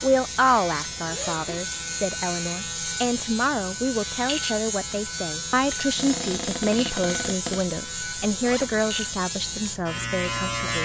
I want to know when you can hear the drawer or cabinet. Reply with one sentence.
The drawer or cabinet can be heard from 6.0 to 7.7 s.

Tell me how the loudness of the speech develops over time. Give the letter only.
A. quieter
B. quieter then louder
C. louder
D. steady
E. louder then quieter
D.